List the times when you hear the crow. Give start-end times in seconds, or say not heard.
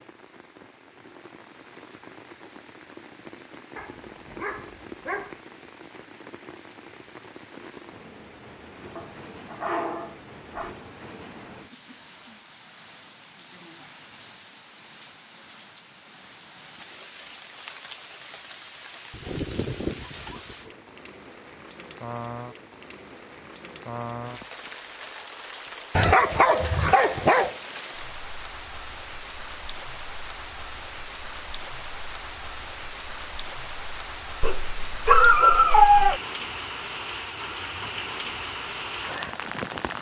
not heard.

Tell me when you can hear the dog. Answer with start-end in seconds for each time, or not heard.
3.8-5.4, 8.9-10.8, 19.1-20.7, 25.9-27.6, 34.4-36.2.